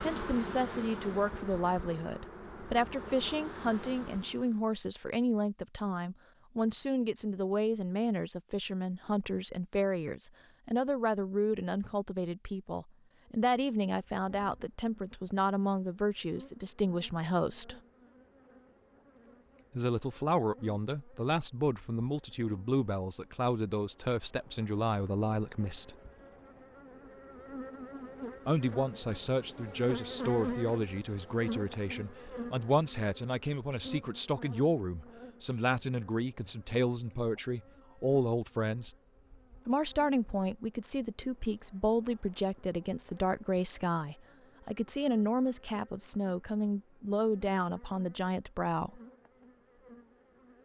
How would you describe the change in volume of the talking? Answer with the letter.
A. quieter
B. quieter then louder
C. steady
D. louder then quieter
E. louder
C.